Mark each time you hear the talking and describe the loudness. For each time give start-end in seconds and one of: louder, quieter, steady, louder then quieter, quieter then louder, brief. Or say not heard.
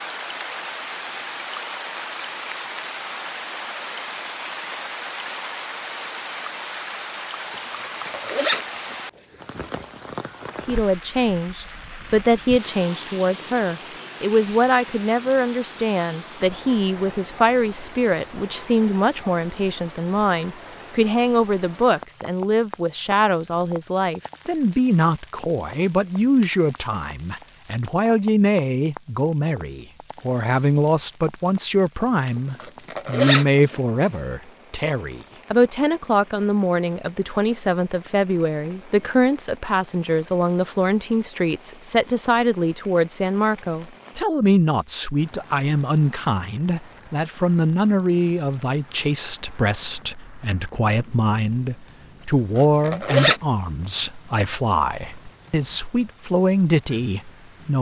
10.7-57.7 steady.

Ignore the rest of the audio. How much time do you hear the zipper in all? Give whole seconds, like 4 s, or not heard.
4 s.